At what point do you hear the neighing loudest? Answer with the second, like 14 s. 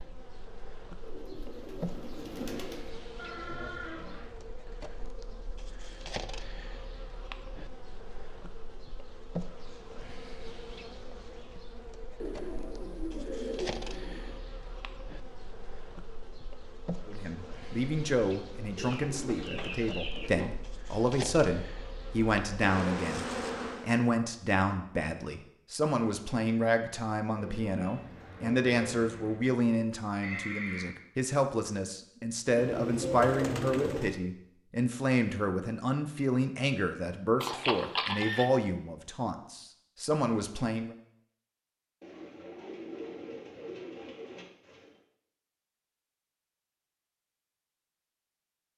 38 s.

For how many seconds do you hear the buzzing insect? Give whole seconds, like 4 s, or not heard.
24 s.